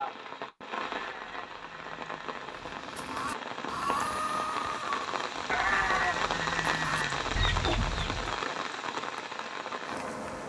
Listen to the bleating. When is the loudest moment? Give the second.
6 s.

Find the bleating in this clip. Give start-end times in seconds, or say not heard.
1.0-2.5, 5.5-7.4.